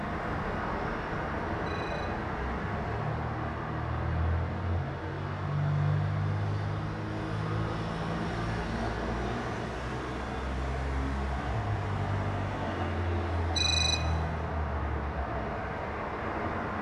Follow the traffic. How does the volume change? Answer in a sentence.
The loudness of the traffic stays about the same.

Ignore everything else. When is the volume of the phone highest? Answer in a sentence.
The volume of the phone peaks at 14 seconds.